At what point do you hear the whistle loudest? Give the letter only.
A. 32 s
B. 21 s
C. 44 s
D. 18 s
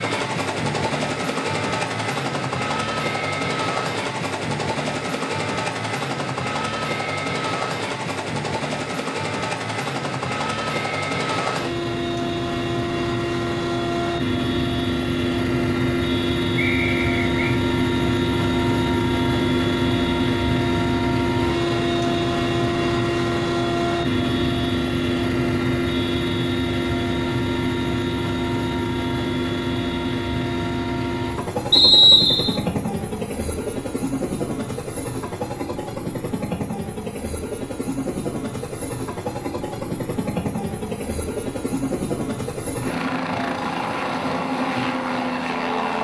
A.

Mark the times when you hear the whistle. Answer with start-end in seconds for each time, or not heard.
16.6-17.6, 31.7-32.5.